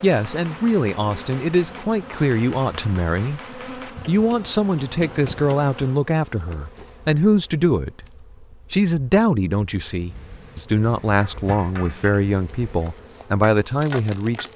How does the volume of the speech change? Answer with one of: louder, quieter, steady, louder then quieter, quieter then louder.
steady.